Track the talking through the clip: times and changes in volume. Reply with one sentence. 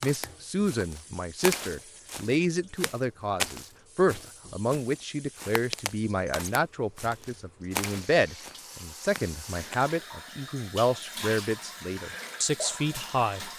You can hear the talking from 0.0 to 13.5 s, at a steady volume.